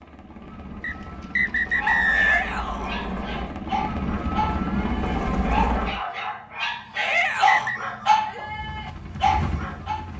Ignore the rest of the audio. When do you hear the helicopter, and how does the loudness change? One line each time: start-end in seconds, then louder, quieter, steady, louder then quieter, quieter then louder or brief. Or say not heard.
0.0-6.0 louder
8.4-10.1 brief.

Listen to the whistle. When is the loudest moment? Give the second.
2 s.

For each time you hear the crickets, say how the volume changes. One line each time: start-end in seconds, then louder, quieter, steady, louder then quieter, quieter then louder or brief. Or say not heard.
not heard.